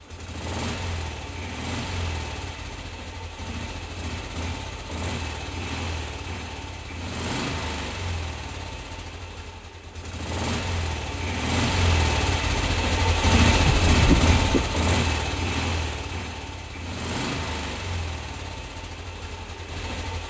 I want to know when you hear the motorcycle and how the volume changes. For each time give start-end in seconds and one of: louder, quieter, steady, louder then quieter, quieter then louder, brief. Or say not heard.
0.0-20.2 louder then quieter.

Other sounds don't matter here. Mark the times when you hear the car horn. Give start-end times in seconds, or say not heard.
13.6-14.7.